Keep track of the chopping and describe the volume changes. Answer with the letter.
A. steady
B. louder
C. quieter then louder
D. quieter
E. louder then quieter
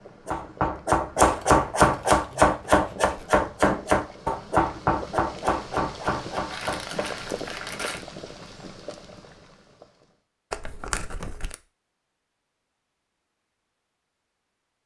D.